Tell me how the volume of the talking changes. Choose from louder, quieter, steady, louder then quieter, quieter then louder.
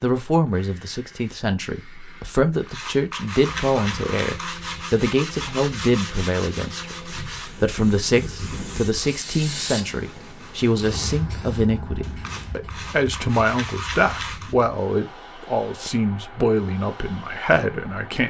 steady.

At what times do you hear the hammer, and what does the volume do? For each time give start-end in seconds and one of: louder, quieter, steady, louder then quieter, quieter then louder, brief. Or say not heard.
not heard.